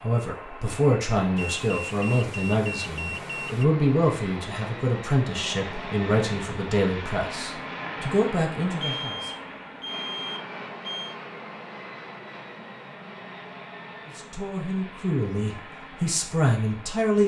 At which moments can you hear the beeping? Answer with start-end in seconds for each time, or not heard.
1.4-3.6, 8.8-11.2.